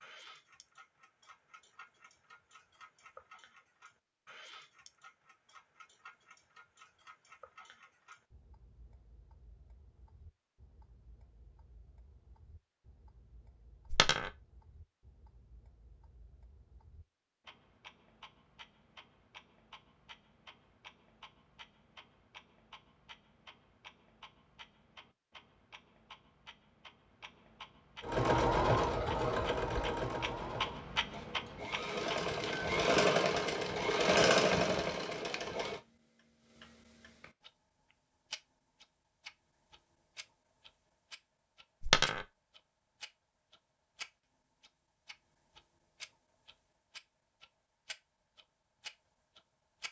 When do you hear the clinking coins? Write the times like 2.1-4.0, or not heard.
13.9-14.3, 41.8-42.2.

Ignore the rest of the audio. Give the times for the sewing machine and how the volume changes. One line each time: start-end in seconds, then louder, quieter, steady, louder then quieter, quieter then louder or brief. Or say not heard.
28.0-35.8 quieter then louder.